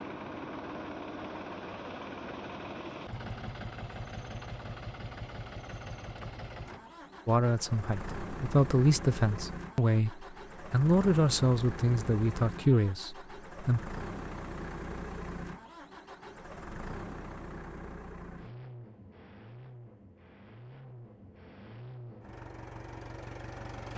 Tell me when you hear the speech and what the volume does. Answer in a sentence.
You can hear the speech from 7.2 to 13.8 s, at a steady volume.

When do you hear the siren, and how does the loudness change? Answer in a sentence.
The siren can't be heard in this clip.